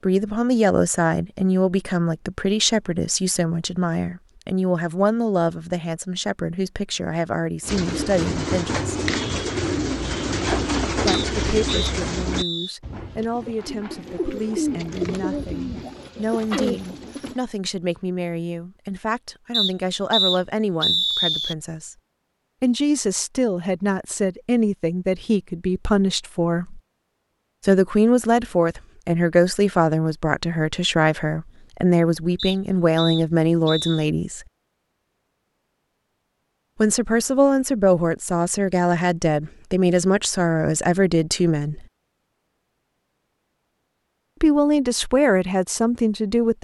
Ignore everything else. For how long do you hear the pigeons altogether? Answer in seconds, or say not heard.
10 s.